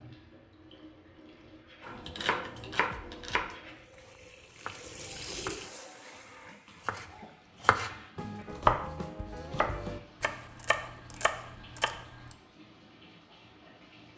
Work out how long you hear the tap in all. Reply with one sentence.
You can hear the tap for 14 seconds altogether.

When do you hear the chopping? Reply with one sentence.
You can hear the chopping from 1.8 to 12.3 s.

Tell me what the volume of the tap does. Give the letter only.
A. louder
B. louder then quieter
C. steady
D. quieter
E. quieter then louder
B.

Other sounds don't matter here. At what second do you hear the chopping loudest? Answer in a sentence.
The volume of the chopping peaks at 9 seconds.